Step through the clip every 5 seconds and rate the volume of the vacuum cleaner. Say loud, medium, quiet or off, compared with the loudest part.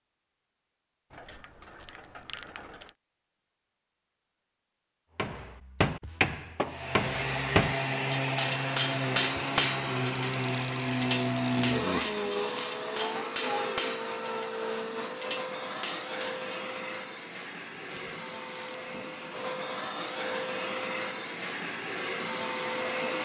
off, loud, loud, medium, loud.